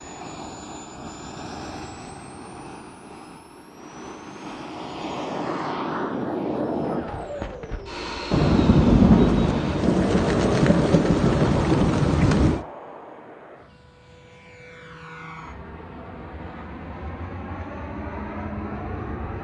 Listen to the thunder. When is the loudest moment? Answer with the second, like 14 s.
9 s.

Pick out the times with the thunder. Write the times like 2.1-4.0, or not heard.
8.3-12.7.